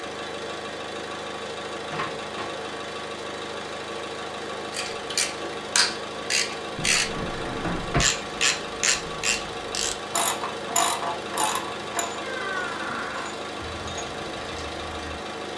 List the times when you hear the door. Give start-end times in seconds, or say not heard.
1.9-2.5, 6.8-8.1, 12.2-13.3.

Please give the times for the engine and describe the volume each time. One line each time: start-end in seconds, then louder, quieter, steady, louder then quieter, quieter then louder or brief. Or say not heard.
0.0-15.5 steady.